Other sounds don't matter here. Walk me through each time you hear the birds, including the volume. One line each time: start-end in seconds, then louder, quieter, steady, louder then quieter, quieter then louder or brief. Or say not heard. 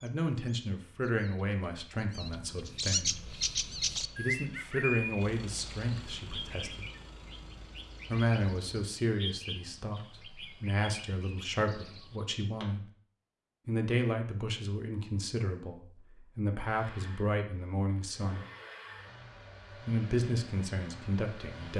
0.0-12.4 louder then quieter.